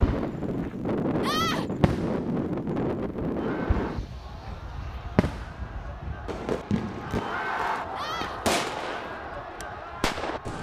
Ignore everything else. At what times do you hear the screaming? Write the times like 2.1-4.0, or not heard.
1.2-1.7, 8.0-8.4.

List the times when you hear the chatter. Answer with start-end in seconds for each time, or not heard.
3.4-10.5.